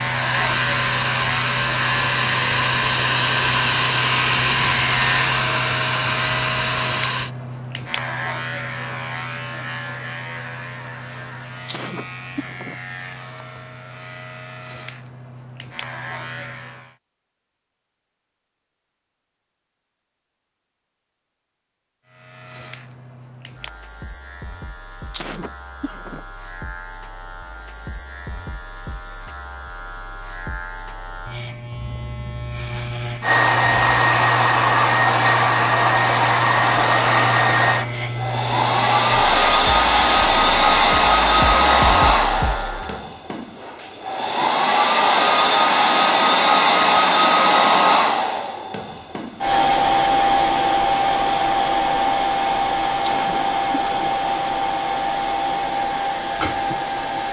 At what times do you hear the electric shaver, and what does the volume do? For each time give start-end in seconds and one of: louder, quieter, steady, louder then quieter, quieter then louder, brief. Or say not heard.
0.0-16.9 quieter
22.1-43.0 louder.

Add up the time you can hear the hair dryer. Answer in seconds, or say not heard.
31 s.